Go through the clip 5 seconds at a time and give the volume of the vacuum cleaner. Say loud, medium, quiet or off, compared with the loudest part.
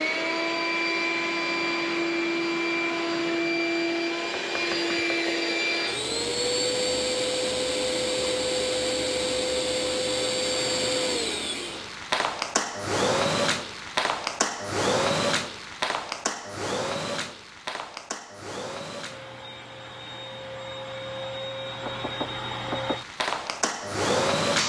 loud, loud, loud, medium, loud.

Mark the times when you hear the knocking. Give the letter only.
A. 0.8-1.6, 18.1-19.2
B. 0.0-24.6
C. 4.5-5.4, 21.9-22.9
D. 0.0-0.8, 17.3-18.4
C.